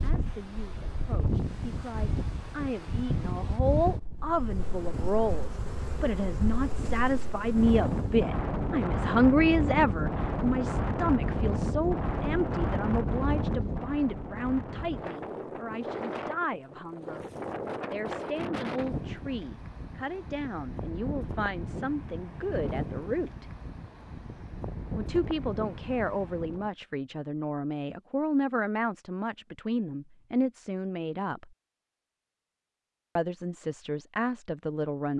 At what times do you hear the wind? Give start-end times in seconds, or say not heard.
0.0-26.7.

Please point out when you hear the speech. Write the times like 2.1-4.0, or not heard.
0.0-17.2, 17.9-23.4, 24.9-31.4, 33.1-35.1.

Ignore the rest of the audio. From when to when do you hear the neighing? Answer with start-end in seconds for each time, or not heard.
not heard.